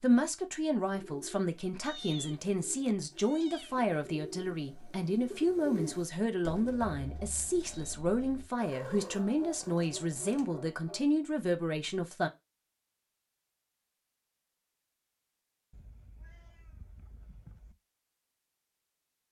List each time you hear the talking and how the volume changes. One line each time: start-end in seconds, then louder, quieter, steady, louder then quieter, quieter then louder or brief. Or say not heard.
0.0-12.3 steady.